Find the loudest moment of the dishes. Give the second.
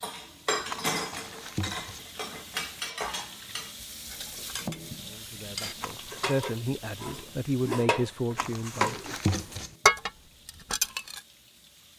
10 s.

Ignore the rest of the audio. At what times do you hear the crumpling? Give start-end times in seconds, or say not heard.
0.7-2.0, 5.8-6.3, 8.3-9.8.